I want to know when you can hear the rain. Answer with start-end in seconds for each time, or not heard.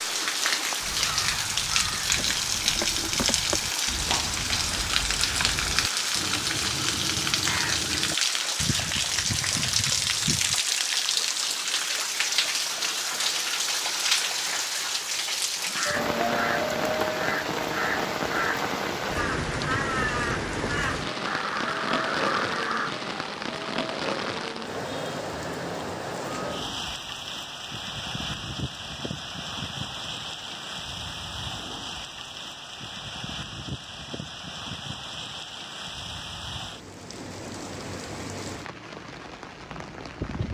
0.0-40.4.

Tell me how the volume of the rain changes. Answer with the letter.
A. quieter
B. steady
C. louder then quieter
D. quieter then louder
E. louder
A.